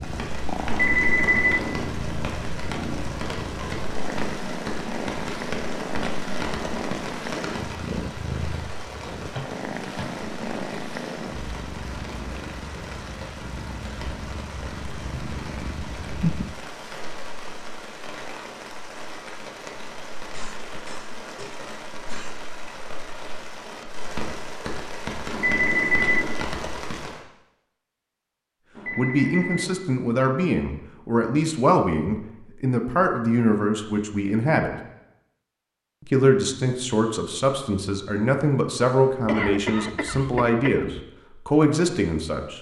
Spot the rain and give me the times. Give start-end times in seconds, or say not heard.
0.0-27.2.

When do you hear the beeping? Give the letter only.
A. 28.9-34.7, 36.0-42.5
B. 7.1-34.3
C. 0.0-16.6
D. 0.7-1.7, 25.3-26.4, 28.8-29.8
D.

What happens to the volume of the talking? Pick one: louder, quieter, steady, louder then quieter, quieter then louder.
steady.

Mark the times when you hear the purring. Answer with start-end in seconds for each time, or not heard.
0.0-16.6.